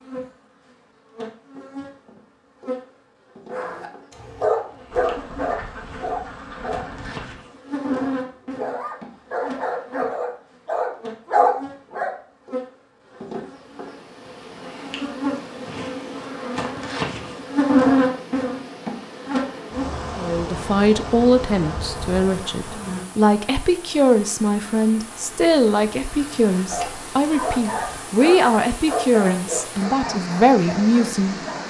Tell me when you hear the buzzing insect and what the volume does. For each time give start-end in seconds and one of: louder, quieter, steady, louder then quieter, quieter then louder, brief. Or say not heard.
0.0-23.1 louder then quieter.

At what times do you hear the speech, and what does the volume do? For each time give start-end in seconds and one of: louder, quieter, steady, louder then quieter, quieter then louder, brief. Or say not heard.
20.1-31.6 steady.